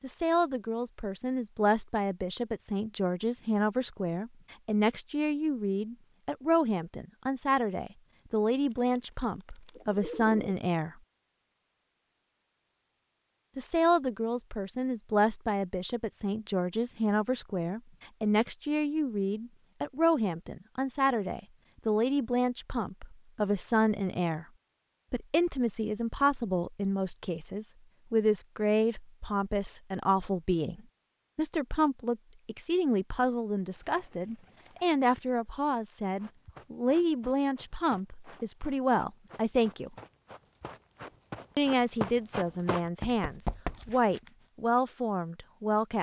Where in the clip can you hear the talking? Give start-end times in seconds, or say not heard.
0.0-10.9, 13.6-24.4, 25.1-39.9, 41.5-45.9.